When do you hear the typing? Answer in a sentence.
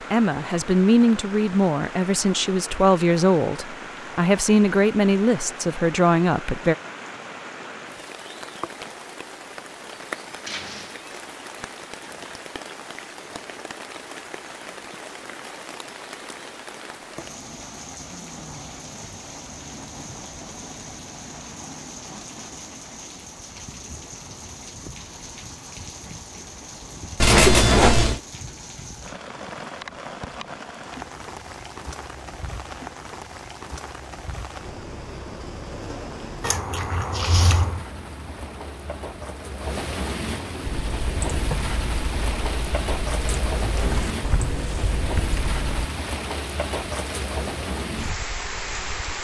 The typing can be heard from 40.6 to 45.9 s.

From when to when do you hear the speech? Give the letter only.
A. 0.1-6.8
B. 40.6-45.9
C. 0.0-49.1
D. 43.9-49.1
A.